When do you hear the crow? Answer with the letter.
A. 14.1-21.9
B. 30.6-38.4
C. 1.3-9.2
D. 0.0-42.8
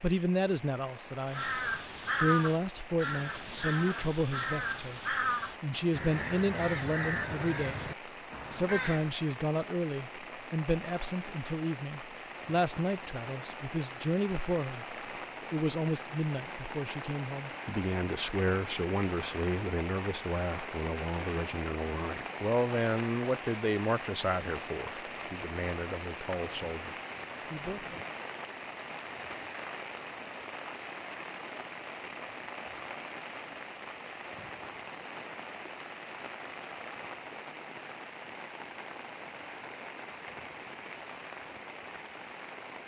C.